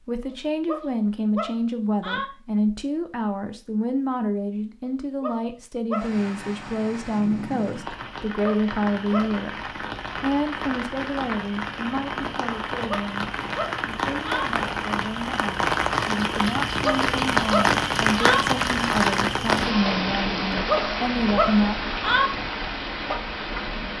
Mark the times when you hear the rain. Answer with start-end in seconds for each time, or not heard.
5.9-23.9.